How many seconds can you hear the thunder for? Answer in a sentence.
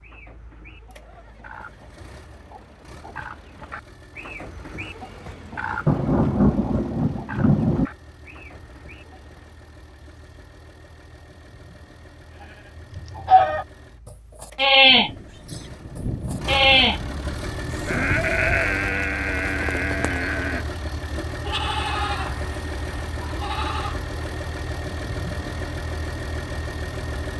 You can hear the thunder for 6 seconds altogether.